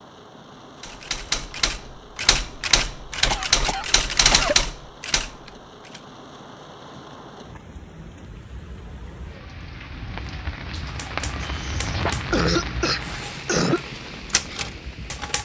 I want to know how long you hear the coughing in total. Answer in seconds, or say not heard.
4 s.